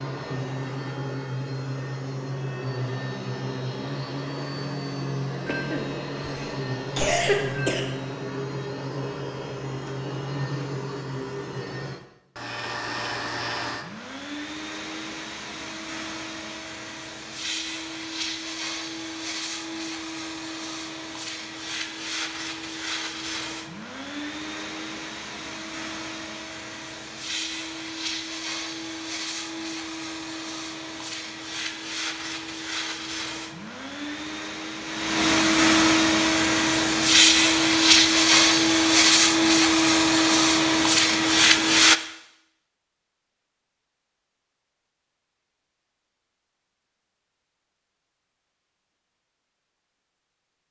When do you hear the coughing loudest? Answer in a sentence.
The volume of the coughing peaks at 7 seconds.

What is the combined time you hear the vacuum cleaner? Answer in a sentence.
You can hear the vacuum cleaner for 42 seconds altogether.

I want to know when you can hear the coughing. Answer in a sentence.
The coughing can be heard from 5.5 to 7.8 s.